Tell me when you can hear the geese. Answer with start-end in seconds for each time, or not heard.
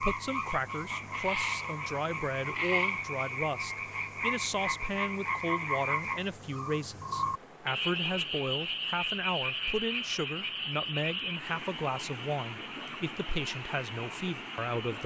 not heard.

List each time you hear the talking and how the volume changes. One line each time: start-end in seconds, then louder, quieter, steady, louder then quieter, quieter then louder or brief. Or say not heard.
0.0-15.0 steady.